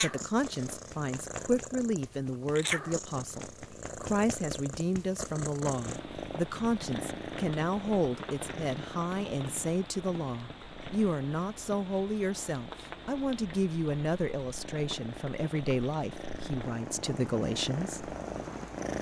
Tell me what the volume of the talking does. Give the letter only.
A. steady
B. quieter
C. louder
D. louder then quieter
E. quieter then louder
A.